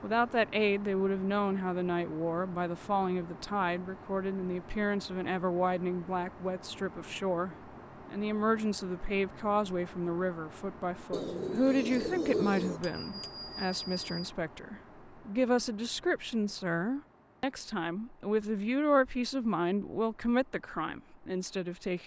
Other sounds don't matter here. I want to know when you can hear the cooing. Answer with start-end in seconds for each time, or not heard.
11.1-12.8.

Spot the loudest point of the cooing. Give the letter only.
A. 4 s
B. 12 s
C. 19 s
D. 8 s
B.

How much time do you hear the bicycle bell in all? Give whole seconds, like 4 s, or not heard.
2 s.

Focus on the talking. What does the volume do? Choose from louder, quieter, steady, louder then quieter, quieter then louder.
steady.